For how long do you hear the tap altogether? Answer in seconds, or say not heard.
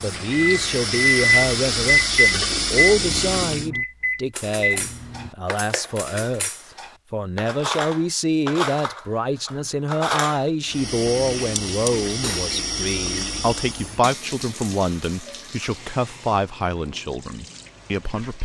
11 s.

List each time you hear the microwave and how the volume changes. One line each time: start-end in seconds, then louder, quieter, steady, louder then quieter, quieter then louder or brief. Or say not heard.
0.2-5.3 quieter then louder.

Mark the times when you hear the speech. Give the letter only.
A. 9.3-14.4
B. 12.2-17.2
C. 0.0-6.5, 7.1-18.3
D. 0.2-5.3
C.